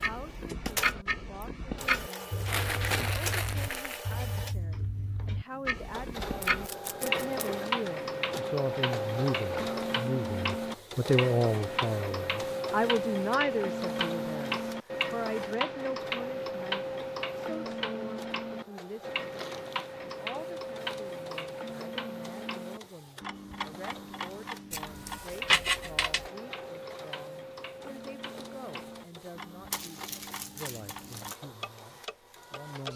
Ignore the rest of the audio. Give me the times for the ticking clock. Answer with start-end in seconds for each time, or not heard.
0.0-32.9.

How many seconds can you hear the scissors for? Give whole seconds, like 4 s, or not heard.
3 s.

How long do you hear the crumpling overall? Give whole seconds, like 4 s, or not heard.
4 s.